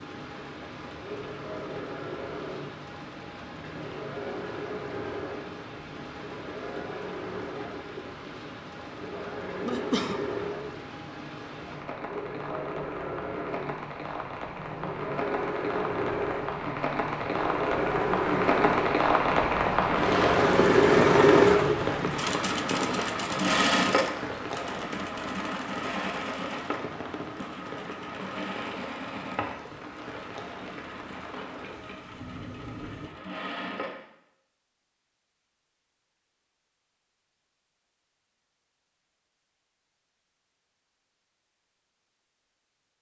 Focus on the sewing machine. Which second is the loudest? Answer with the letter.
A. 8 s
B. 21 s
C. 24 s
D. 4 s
B.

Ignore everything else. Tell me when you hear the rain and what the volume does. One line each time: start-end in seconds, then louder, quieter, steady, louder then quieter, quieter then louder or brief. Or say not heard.
0.0-33.1 louder then quieter.